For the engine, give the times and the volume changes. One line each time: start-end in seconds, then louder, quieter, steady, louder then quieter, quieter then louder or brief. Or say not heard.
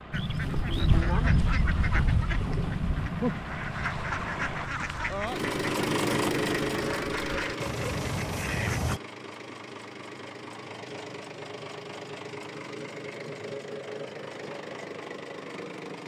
0.0-16.0 louder then quieter.